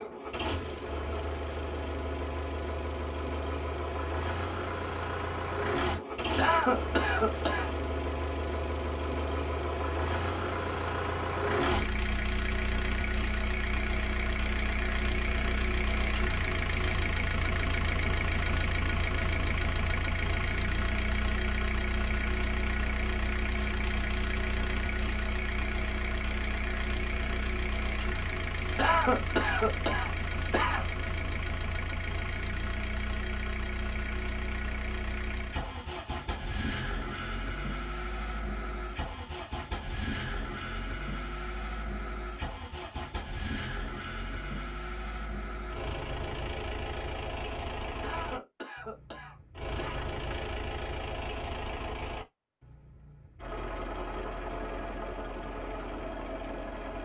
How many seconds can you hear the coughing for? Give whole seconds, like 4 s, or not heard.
6 s.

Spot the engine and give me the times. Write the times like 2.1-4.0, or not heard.
0.0-56.9.